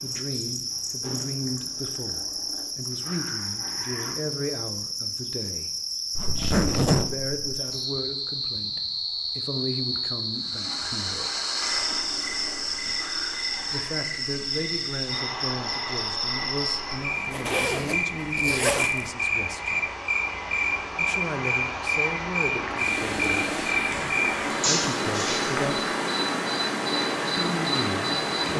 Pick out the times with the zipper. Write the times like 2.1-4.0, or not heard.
6.2-7.3, 17.1-19.1.